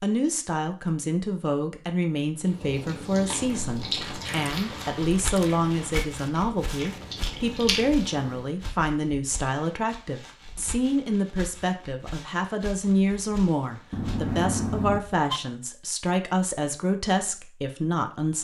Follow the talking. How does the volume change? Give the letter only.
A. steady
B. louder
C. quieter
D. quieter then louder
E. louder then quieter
A.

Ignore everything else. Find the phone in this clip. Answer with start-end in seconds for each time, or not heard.
13.9-15.4.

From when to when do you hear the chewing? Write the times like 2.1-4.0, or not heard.
2.5-8.5.